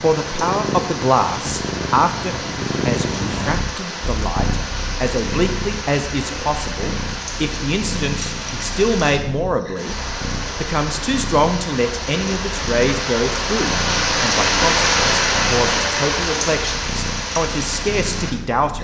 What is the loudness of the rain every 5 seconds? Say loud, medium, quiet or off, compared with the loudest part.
medium, medium, loud, loud.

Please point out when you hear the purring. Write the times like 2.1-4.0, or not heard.
0.0-18.7.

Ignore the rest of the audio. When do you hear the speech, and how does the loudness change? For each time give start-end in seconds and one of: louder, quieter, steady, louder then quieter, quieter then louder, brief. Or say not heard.
0.0-18.7 steady.